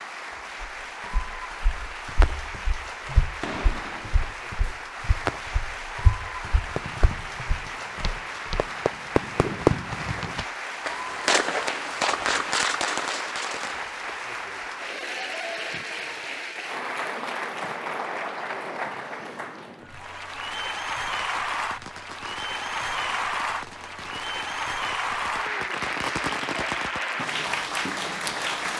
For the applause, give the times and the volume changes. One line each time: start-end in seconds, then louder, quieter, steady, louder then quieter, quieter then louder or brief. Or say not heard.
0.0-28.7 louder.